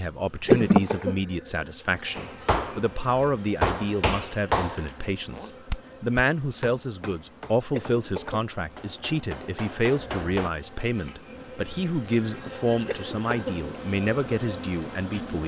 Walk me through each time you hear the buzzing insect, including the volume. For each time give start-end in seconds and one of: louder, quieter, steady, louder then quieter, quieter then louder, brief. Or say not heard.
0.0-15.4 quieter then louder.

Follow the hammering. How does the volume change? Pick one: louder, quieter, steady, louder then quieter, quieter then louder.
quieter then louder.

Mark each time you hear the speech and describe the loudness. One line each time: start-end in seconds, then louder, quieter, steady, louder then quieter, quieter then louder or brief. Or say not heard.
0.0-15.4 steady.